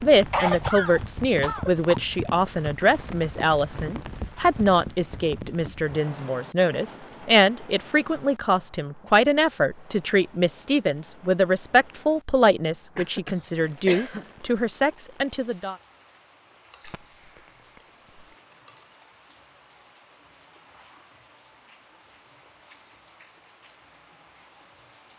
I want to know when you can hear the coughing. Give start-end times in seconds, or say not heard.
0.2-2.0, 12.9-14.2, 16.8-18.2.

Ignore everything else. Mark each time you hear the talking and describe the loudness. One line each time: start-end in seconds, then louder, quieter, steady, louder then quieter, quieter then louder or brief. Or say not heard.
0.0-15.8 steady.